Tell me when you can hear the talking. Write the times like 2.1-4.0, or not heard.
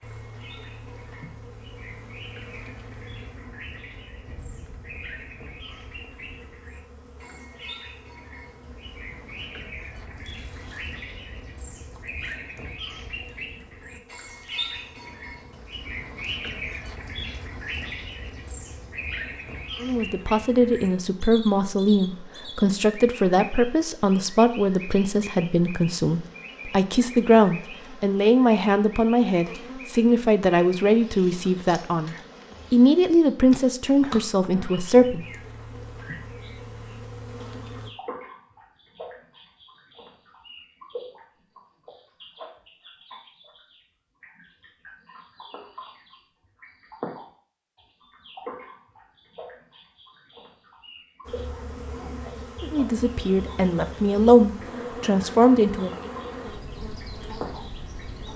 19.8-35.2, 52.6-56.1.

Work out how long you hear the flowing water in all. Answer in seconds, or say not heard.
not heard.